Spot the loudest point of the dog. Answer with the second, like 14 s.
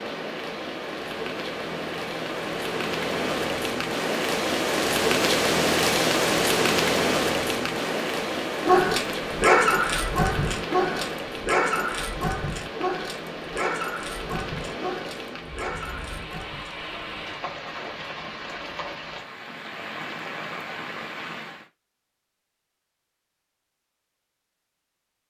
10 s.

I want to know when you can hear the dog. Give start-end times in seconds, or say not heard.
8.7-16.9.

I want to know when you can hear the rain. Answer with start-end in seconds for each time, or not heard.
0.0-21.7.